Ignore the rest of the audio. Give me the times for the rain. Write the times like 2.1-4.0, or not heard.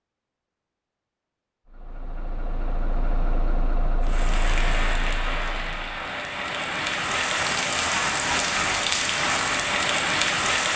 4.0-10.7.